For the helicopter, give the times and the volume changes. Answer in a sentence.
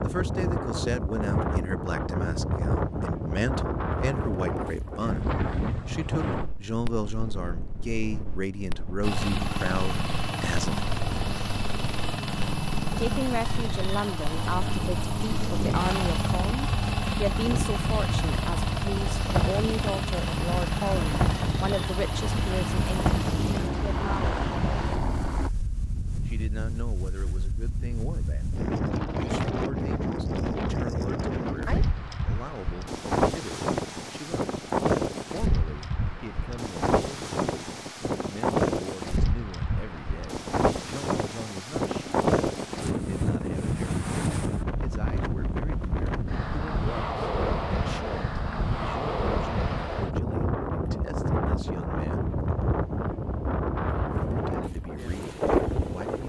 The helicopter can be heard from 9.0 to 25.5 s, at a steady volume.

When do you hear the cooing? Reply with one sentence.
You can't hear the cooing here.